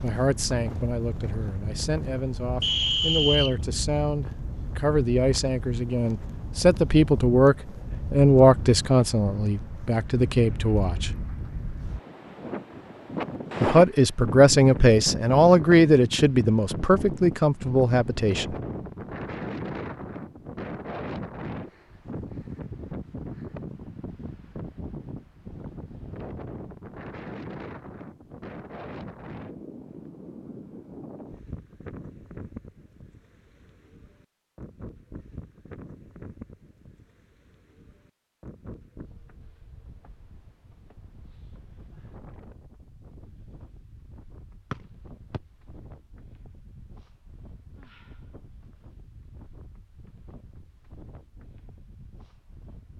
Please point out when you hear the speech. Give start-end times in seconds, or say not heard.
0.0-11.1, 13.6-18.6.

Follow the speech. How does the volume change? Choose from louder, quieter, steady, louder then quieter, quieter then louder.
louder.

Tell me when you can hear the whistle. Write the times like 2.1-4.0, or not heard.
2.6-3.5, 44.7-45.4.